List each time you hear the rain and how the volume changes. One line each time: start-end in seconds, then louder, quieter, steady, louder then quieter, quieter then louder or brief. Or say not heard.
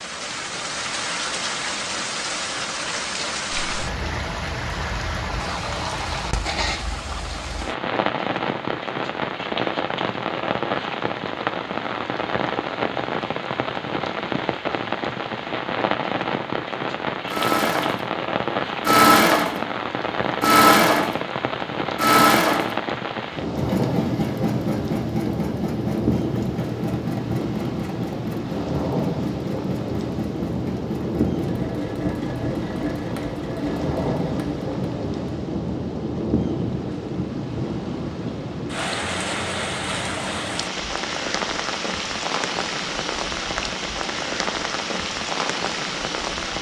0.0-46.5 steady.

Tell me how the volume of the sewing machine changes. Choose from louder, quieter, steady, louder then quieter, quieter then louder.
quieter.